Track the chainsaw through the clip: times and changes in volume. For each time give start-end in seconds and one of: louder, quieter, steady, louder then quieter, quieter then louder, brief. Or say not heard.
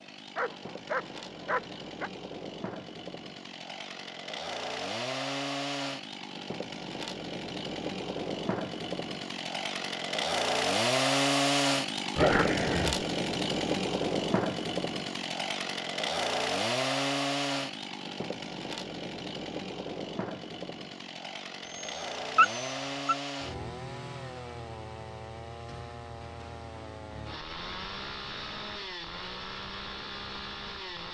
0.0-31.0 louder then quieter.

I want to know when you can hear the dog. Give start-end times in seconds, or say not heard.
0.3-2.1, 12.2-13.1, 21.6-23.1.